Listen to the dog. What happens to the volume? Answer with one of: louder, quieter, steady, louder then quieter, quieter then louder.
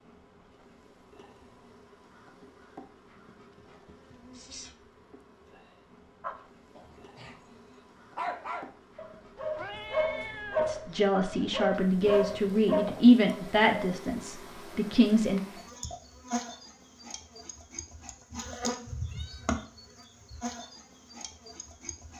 louder.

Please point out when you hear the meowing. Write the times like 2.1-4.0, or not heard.
4.1-4.8, 9.6-11.0, 19.1-19.6.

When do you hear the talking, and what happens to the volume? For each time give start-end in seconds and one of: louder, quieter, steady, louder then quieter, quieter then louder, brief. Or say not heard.
10.6-15.4 louder then quieter.